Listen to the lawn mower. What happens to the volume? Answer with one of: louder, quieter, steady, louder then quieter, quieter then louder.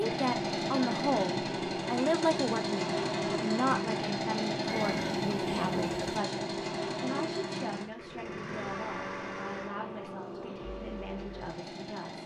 quieter.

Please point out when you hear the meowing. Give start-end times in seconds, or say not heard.
4.7-6.2.